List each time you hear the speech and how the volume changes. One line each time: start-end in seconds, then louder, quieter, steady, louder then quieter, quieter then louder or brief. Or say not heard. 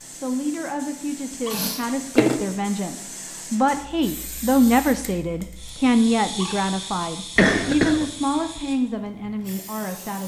0.2-10.2 louder then quieter.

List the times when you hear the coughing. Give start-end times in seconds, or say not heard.
1.5-2.4, 7.3-8.1.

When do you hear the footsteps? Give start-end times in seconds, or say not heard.
not heard.